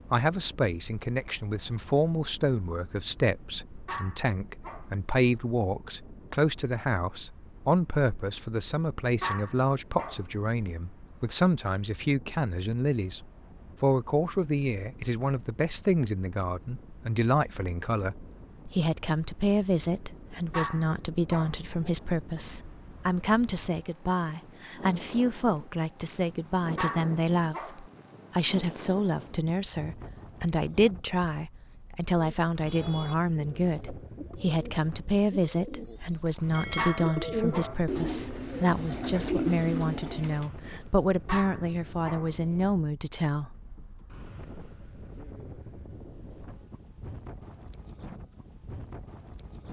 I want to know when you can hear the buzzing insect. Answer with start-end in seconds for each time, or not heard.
not heard.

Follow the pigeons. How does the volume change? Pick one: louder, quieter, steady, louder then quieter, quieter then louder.
louder.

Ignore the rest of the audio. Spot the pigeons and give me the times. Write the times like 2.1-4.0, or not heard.
32.1-40.5.